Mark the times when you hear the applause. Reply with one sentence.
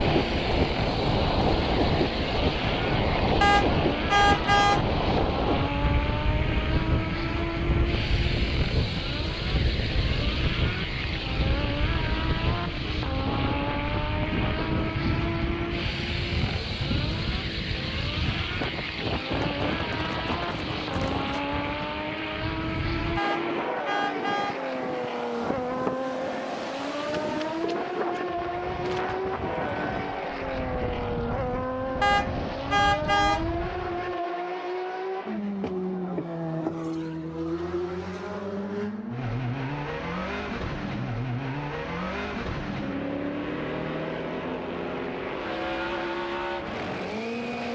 You can't hear the applause here.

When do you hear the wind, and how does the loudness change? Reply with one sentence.
You can hear the wind from 0.0 to 34.2 s, getting quieter.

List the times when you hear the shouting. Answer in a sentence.
You can't hear the shouting here.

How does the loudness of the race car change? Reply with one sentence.
The loudness of the race car stays about the same.